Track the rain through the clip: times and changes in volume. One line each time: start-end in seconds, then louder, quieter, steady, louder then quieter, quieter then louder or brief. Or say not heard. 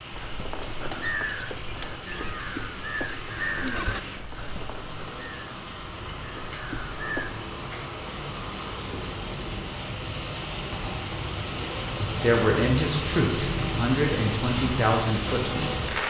0.0-16.0 louder.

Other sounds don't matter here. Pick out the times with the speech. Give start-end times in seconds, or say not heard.
12.1-15.8.